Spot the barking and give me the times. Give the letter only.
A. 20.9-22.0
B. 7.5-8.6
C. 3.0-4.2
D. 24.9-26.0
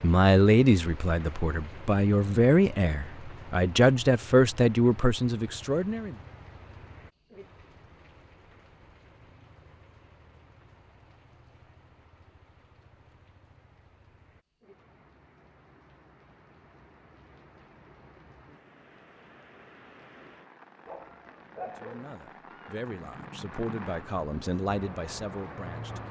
A.